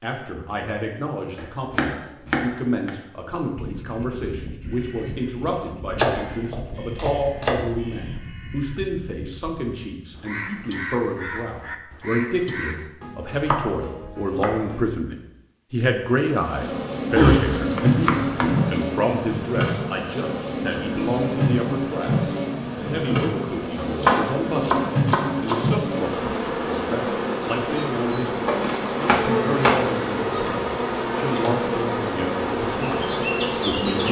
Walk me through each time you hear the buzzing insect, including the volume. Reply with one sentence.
The buzzing insect can be heard from 16.1 to 34.0 s, at a steady volume.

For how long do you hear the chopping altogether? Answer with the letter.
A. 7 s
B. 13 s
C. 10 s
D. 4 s
C.